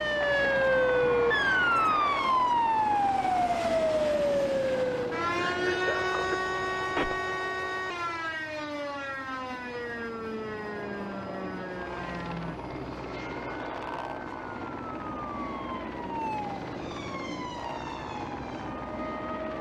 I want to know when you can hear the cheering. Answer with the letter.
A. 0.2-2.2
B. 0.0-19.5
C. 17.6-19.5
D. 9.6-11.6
A.